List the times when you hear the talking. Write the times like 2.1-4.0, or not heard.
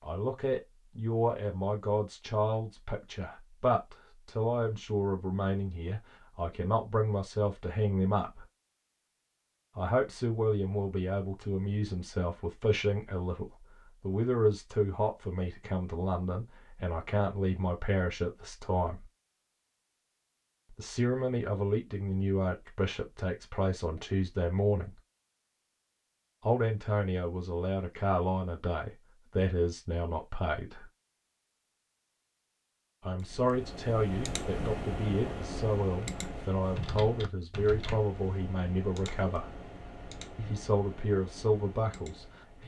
0.0-8.4, 9.8-19.1, 20.7-24.9, 26.4-30.9, 33.0-39.6, 40.4-42.6.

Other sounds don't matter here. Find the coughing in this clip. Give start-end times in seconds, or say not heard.
not heard.